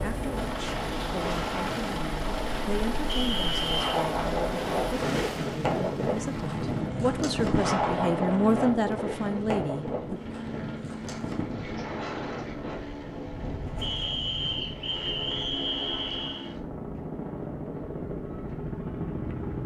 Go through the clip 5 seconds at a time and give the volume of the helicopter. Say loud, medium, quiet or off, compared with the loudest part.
loud, loud, medium, loud.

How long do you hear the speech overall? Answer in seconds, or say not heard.
10 s.